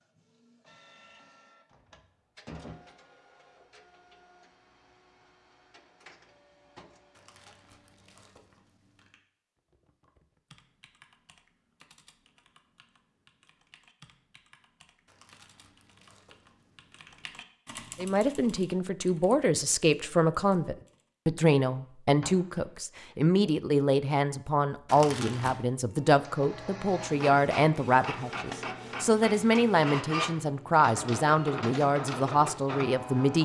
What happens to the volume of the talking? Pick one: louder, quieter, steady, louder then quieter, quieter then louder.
steady.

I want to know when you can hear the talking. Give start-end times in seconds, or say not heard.
17.9-33.4.